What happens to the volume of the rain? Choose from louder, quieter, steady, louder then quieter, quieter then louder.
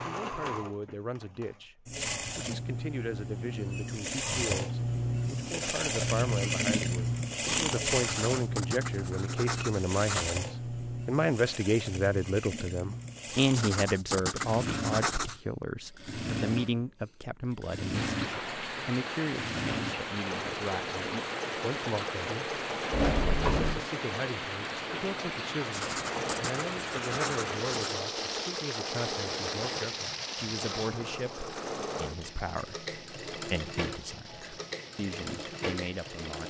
quieter.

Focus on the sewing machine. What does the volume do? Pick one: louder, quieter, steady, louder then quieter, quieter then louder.
quieter.